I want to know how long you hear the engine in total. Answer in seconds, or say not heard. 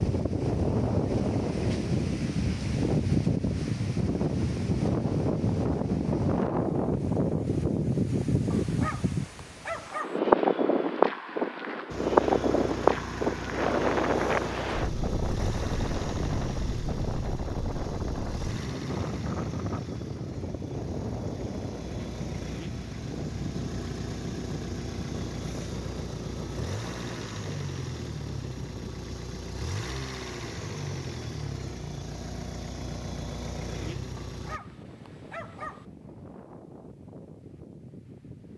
23 s.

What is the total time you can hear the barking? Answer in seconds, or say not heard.
3 s.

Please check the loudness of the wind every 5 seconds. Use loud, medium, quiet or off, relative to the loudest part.
loud, loud, loud, medium, quiet, quiet, quiet, quiet.